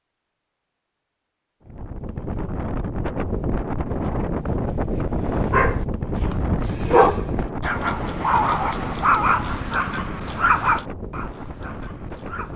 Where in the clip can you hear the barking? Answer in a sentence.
The barking can be heard from 5.5 to 12.5 s.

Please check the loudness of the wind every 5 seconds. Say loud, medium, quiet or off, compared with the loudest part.
loud, loud, medium.